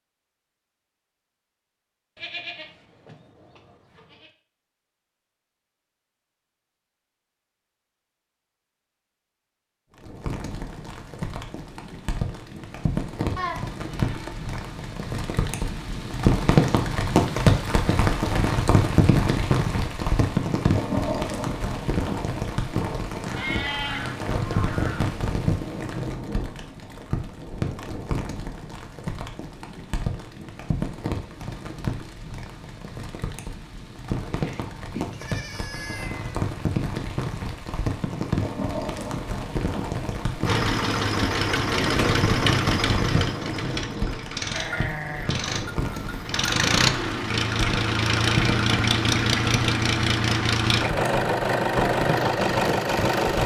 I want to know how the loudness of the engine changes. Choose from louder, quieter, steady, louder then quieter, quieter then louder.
quieter then louder.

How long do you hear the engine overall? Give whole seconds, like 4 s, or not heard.
13 s.